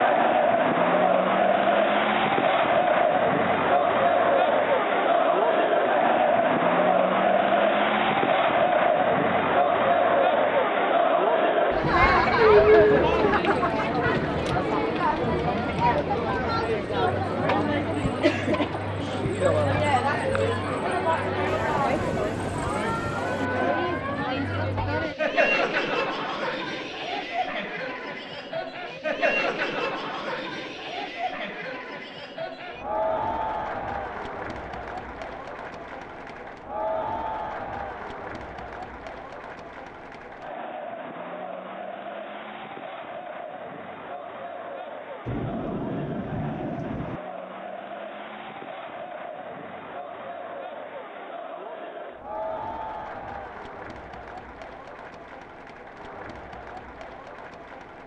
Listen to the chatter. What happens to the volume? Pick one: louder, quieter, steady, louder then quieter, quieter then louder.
quieter.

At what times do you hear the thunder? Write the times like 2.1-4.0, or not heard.
21.4-23.4, 45.2-47.2.